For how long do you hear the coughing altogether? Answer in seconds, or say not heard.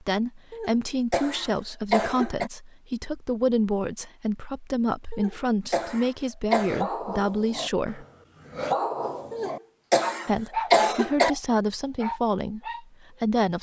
6 s.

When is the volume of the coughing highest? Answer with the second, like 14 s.
11 s.